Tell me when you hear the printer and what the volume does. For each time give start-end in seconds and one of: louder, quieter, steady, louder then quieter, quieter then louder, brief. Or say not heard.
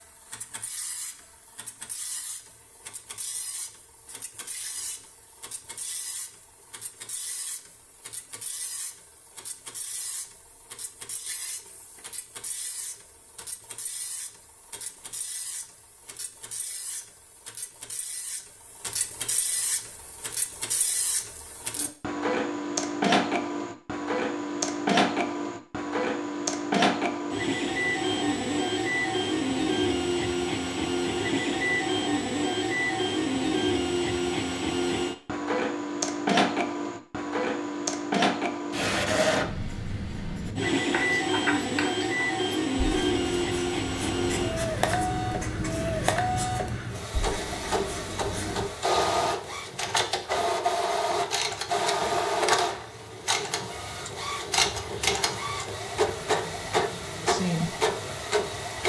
0.0-58.8 louder.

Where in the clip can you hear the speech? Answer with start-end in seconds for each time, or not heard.
57.0-57.8.